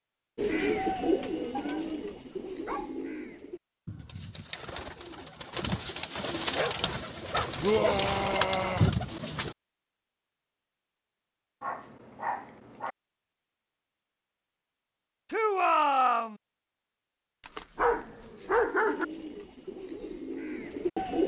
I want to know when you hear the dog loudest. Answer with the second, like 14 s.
19 s.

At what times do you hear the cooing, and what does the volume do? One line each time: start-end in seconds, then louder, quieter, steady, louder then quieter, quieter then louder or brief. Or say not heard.
0.3-9.6 quieter then louder
18.8-21.2 brief.